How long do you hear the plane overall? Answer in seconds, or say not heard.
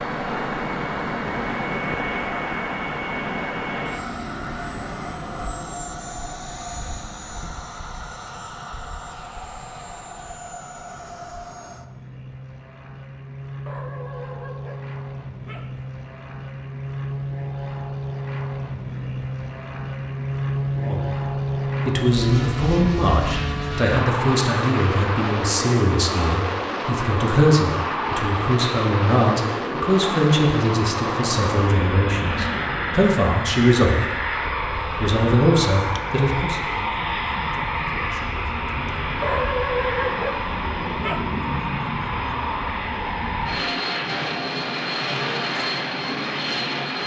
47 s.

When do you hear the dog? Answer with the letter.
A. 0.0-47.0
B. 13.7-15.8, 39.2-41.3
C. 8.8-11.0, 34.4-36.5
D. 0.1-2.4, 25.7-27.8
B.